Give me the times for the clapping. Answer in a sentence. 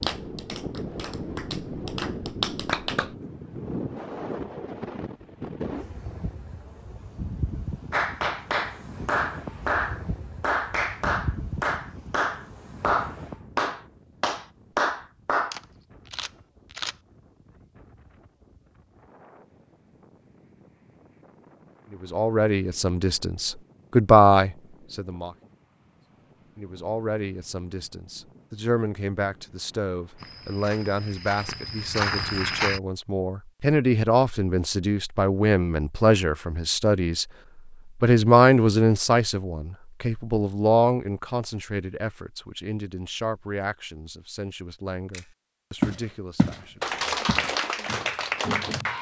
The clapping can be heard from 0.0 to 3.1 s, from 7.9 to 15.6 s and from 46.8 to 48.9 s.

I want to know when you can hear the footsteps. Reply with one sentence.
You can hear the footsteps from 30.1 to 32.8 s and from 45.8 to 48.9 s.